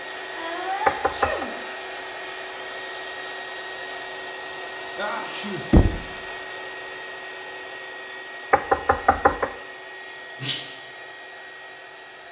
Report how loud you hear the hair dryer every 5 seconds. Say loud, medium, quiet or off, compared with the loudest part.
loud, loud, medium.